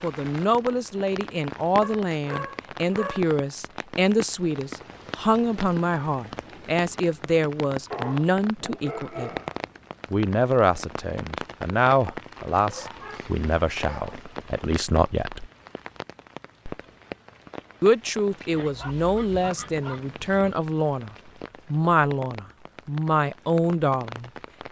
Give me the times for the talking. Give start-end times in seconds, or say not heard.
0.0-9.3, 10.1-15.5, 17.8-24.6.